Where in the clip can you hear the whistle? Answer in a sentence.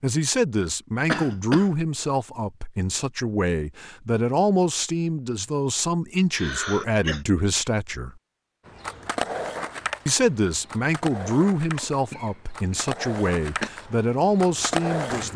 You can't hear the whistle here.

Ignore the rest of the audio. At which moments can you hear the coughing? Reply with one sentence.
The coughing can be heard from 1.1 to 1.7 s, from 6.3 to 7.2 s and from 11.8 to 13.7 s.